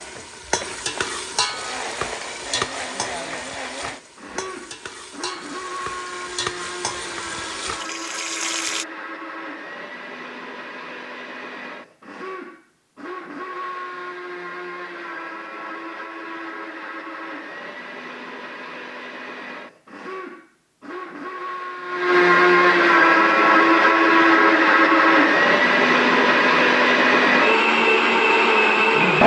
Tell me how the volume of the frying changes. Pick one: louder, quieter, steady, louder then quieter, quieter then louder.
quieter then louder.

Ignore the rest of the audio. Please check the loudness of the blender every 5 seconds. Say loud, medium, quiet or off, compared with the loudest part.
quiet, quiet, quiet, quiet, loud, loud.